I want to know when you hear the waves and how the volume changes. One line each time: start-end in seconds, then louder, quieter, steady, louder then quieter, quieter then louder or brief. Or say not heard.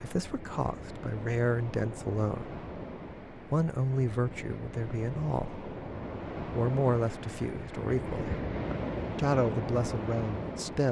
0.0-10.8 louder.